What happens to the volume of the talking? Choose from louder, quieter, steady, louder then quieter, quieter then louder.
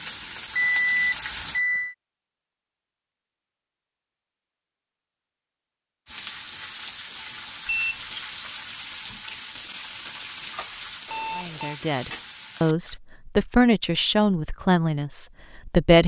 louder then quieter.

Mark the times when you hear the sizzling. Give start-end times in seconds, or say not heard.
0.0-1.6, 6.0-13.0.